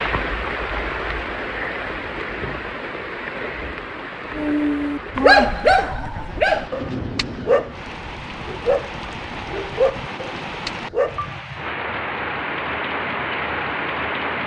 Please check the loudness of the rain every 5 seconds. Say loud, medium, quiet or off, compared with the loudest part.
loud, medium, loud.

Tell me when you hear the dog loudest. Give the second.
5 s.